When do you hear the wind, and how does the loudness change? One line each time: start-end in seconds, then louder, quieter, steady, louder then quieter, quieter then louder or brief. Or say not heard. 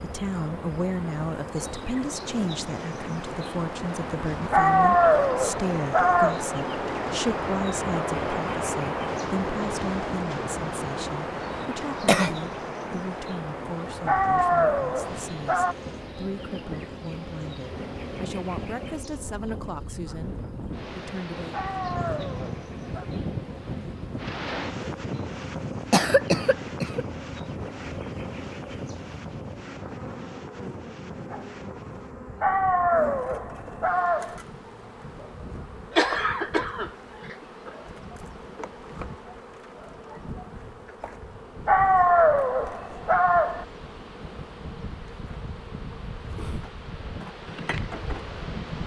0.0-48.8 quieter.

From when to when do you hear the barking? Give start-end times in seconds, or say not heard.
4.5-6.4, 14.1-15.8, 21.5-23.1, 32.4-34.4, 41.6-43.6.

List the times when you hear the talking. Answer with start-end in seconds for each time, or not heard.
0.0-20.4, 20.9-21.6.